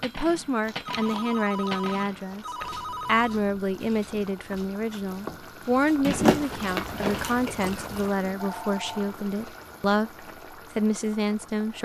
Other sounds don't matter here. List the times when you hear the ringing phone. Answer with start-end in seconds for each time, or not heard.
0.8-3.3, 8.3-9.2.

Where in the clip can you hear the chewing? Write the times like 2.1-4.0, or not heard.
0.6-2.8, 6.0-8.1.